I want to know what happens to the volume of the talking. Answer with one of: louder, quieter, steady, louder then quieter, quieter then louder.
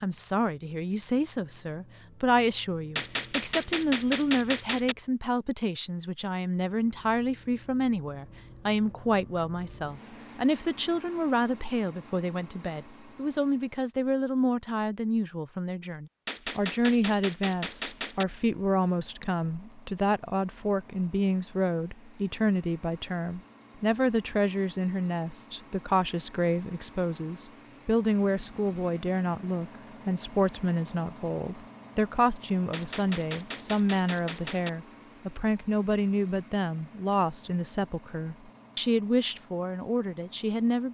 steady.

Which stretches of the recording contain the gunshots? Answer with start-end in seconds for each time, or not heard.
3.0-5.0, 16.2-18.2, 32.7-34.7.